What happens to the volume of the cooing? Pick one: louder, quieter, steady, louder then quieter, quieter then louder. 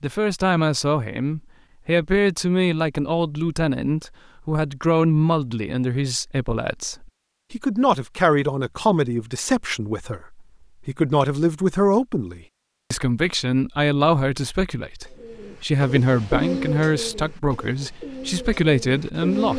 louder then quieter.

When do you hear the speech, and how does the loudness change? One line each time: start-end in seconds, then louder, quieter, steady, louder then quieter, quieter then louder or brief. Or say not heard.
0.0-19.5 steady.